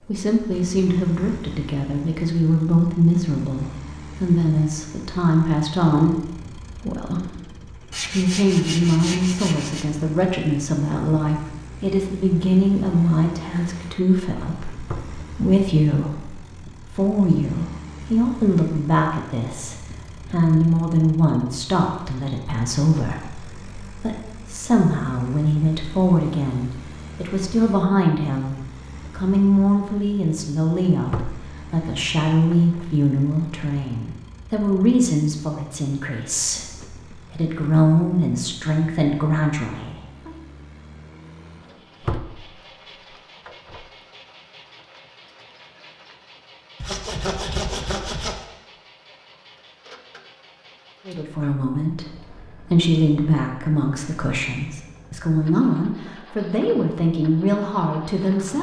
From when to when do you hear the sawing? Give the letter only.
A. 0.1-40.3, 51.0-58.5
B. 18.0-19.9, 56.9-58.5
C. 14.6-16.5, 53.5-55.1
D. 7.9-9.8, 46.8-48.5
D.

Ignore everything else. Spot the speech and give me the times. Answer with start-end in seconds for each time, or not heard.
0.1-40.3, 51.0-58.5.